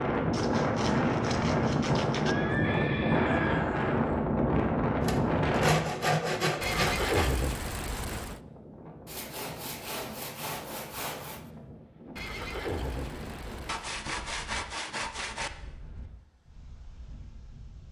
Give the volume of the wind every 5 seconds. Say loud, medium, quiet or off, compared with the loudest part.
loud, medium, quiet, quiet.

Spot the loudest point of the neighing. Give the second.
7 s.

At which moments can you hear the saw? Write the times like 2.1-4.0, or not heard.
0.3-2.4, 5.0-7.3, 9.1-11.5, 13.7-15.5.